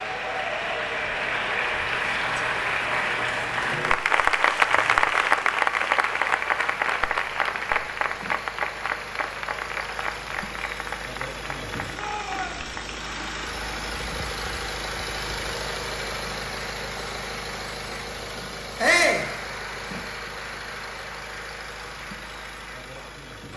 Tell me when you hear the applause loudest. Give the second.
5 s.